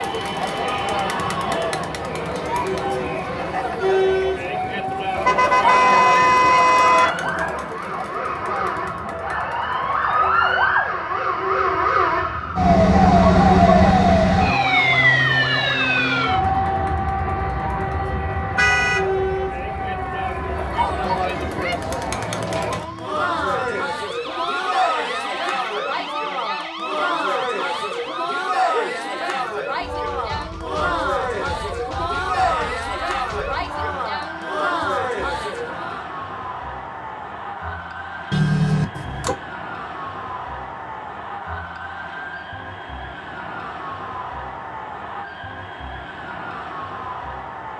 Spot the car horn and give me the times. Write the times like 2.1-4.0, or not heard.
5.2-7.2, 18.6-19.1, 38.3-39.4.